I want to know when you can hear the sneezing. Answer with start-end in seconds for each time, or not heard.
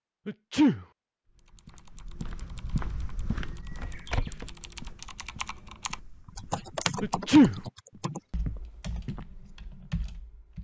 0.2-0.8, 7.0-7.6.